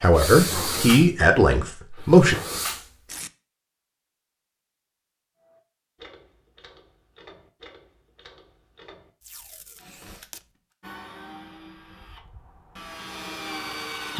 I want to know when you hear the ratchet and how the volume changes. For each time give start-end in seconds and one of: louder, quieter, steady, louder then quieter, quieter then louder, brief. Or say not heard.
5.3-10.3 steady.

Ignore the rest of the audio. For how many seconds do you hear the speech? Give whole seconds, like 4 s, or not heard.
2 s.